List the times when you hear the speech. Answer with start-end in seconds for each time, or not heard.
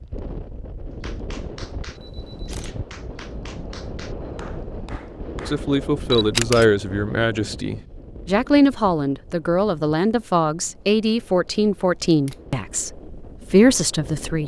5.5-14.4.